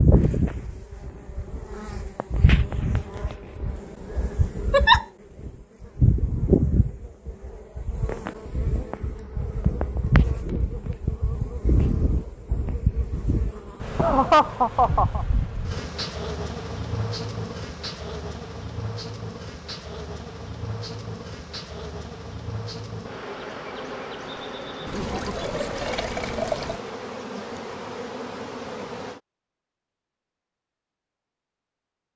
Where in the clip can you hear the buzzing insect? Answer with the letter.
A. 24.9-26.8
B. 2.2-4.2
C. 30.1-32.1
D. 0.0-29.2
D.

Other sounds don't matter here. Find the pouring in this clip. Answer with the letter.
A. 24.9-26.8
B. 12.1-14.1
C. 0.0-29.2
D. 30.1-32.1
A.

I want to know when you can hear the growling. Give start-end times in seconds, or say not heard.
not heard.